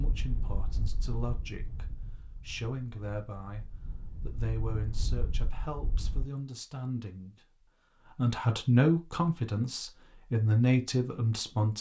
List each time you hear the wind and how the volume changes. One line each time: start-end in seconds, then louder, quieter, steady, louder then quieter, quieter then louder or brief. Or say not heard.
0.0-6.2 quieter then louder.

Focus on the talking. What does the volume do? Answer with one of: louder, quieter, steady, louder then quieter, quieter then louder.
louder.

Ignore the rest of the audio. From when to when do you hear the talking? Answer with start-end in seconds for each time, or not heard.
0.0-11.7.